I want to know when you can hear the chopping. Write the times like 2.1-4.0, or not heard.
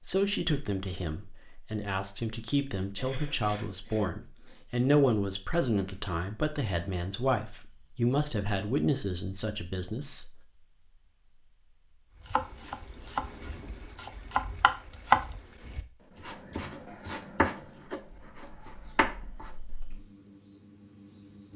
12.2-19.5.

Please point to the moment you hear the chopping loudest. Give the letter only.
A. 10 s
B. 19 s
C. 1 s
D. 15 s
D.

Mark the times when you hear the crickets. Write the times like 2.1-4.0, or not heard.
7.0-21.5.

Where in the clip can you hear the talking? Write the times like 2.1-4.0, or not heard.
0.1-10.4.